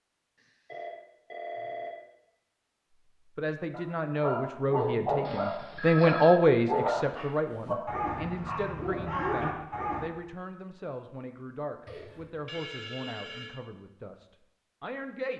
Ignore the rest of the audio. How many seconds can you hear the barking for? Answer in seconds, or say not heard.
6 s.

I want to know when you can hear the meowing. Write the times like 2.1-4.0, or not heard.
not heard.